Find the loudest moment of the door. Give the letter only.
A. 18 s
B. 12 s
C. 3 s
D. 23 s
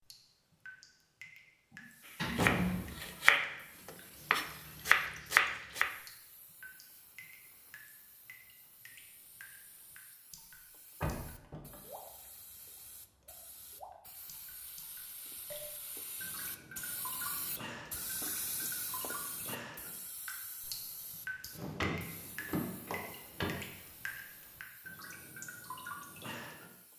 C.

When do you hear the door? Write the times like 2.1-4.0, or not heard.
1.7-3.0, 11.0-11.8, 21.5-23.6.